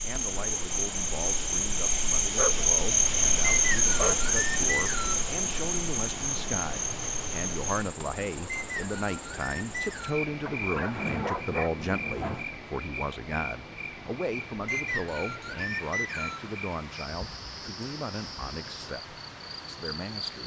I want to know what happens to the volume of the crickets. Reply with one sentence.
The volume of the crickets goes down.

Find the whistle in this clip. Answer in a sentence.
The whistle can be heard from 3.5 to 5.2 s, from 8.4 to 10.2 s and from 14.7 to 16.5 s.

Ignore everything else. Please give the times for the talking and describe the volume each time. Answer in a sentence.
The talking can be heard from 0.0 to 20.4 s, getting louder then quieter.